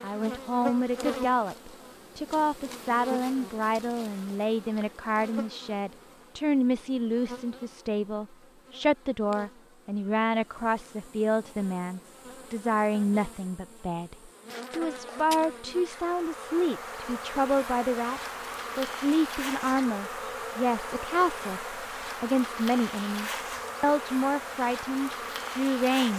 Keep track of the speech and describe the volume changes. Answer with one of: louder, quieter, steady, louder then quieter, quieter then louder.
steady.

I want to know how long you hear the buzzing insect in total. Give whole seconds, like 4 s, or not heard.
26 s.